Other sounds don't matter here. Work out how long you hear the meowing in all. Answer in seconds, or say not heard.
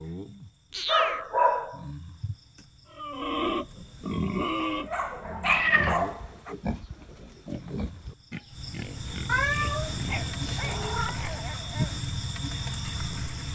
3 s.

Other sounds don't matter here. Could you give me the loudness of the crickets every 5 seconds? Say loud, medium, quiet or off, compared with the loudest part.
quiet, medium, loud.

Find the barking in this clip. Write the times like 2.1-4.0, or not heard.
0.2-2.4, 4.5-6.5, 10.1-11.9.